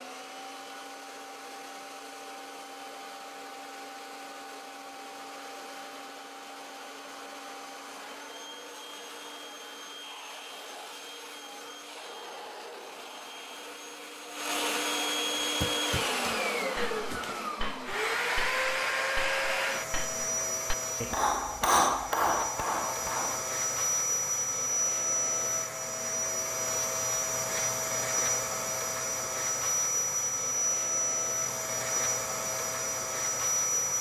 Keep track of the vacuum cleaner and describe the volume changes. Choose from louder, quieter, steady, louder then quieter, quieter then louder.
louder.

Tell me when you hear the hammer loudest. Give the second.
22 s.